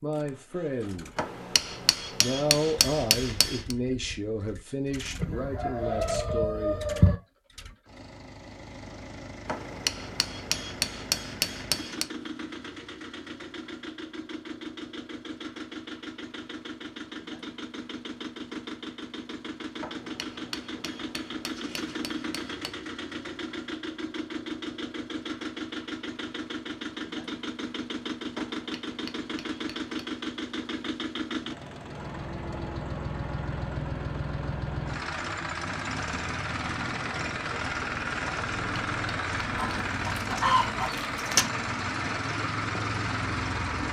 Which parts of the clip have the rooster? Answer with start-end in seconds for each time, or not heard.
5.2-7.2, 39.5-41.5.